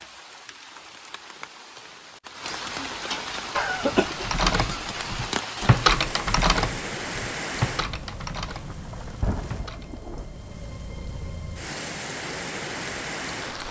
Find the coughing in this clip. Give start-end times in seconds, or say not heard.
3.5-4.3.